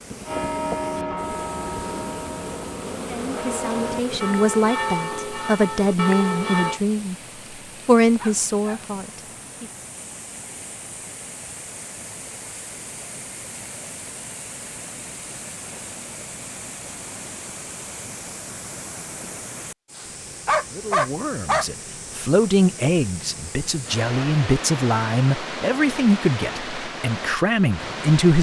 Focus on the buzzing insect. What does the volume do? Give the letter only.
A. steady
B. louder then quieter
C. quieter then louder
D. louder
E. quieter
C.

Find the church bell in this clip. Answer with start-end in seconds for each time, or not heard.
0.2-6.8.